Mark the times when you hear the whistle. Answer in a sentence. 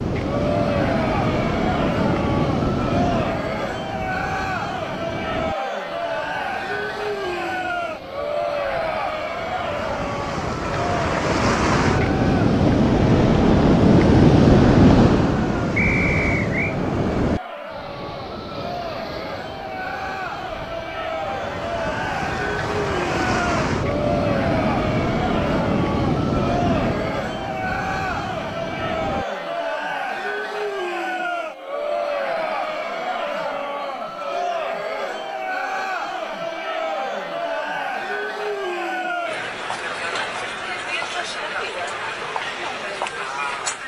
The whistle can be heard from 15.8 to 16.8 s.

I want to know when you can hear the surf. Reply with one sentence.
You can hear the surf from 0.0 to 29.2 s.